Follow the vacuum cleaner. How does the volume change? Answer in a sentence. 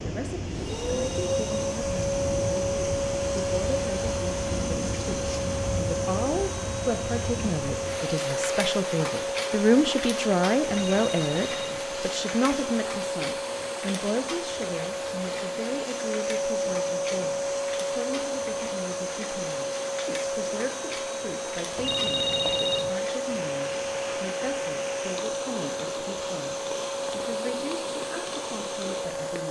The volume of the vacuum cleaner stays about the same.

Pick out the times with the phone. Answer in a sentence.
You can hear the phone from 0.8 to 1.5 s, from 10.7 to 11.8 s and from 21.8 to 22.9 s.